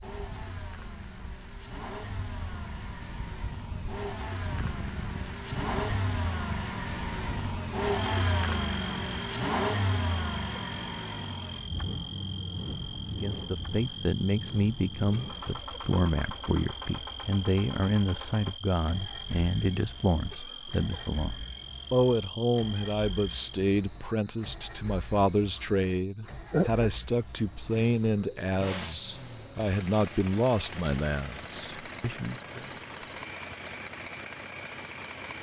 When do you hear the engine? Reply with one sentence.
You can hear the engine from 0.0 to 35.3 s.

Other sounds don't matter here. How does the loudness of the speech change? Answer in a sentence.
The loudness of the speech stays about the same.